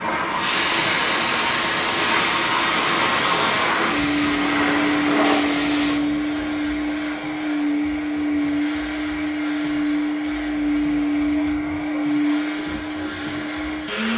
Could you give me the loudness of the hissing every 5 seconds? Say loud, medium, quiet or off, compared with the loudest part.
loud, medium, quiet.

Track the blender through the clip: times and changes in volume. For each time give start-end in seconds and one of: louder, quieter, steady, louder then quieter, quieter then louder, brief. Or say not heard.
0.0-14.1 steady.